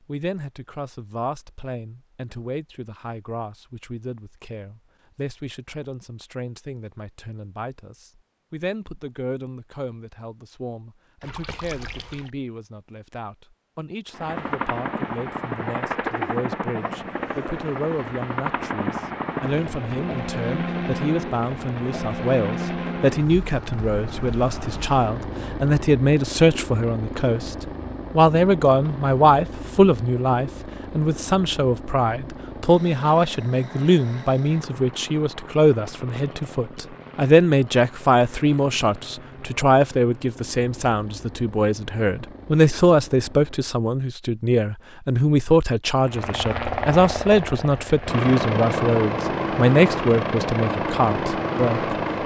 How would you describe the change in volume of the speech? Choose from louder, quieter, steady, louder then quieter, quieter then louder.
louder.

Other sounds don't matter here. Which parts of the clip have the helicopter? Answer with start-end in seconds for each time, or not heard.
14.1-43.9, 46.0-52.2.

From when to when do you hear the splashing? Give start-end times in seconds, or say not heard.
11.2-12.3.